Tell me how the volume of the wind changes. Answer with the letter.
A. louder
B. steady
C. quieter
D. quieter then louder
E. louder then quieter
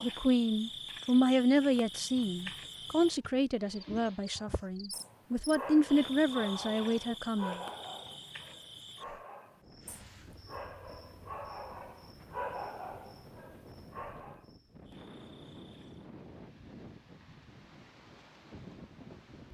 A.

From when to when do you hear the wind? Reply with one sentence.
You can hear the wind from 9.4 to 19.5 s.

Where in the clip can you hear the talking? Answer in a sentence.
The talking can be heard from 0.0 to 7.6 s.